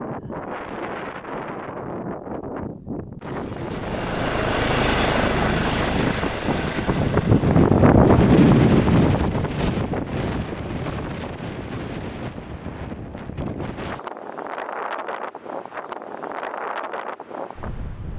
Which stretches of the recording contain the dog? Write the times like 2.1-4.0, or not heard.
not heard.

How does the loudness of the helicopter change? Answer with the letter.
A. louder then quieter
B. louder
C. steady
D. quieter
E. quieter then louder
D.